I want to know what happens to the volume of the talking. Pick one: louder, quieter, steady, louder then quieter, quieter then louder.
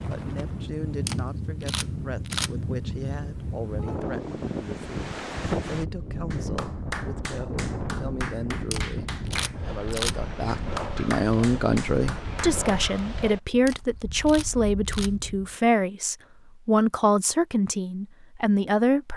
louder.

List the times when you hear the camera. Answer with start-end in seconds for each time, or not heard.
1.1-2.5, 8.7-10.2, 13.7-15.1.